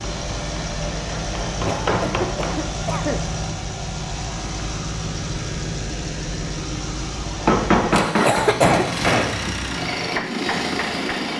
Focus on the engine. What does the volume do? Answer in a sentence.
The volume of the engine stays about the same.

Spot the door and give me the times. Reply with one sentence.
You can't hear the door here.